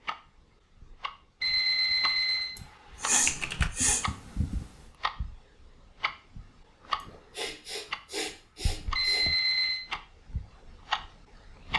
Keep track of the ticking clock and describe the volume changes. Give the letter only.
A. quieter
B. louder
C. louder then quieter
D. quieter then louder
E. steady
B.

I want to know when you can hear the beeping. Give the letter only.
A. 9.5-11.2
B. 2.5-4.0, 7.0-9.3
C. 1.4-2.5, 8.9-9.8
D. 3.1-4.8
C.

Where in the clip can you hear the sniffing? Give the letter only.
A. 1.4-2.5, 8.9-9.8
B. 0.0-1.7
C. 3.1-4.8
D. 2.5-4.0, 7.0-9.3
D.